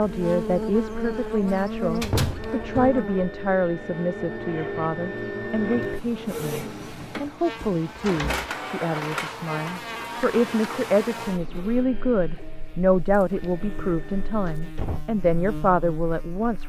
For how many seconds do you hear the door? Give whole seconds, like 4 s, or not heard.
3 s.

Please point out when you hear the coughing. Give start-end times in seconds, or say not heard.
not heard.